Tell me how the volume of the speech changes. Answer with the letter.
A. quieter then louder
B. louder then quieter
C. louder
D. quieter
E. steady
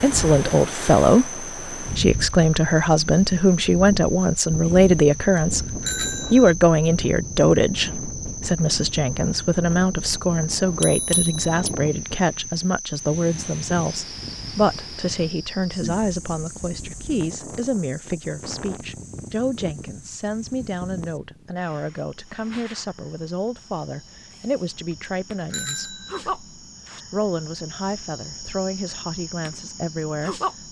D.